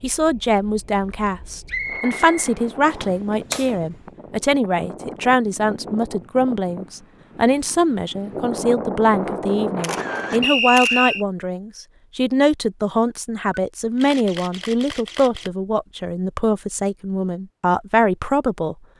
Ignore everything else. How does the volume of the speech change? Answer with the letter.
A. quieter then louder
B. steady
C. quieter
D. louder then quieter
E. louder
B.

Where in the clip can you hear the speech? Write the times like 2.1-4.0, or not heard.
0.0-18.8.